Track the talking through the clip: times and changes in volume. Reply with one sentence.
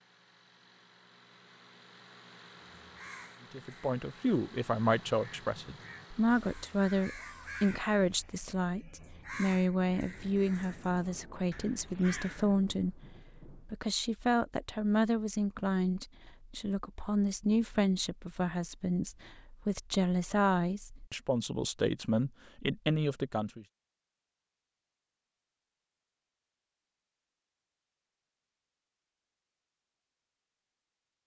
The talking can be heard from 3.5 to 23.6 s, at a steady volume.